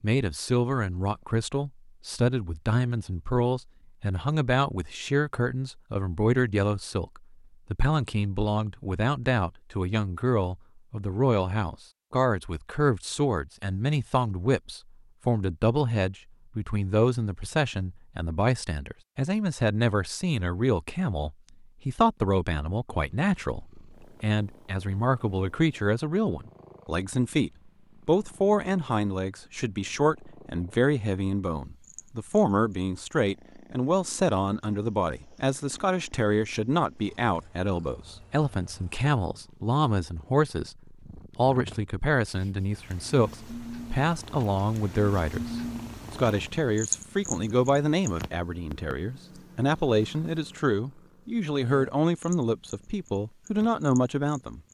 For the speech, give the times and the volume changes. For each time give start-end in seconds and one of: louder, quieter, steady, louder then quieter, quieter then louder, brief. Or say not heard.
0.0-54.6 steady.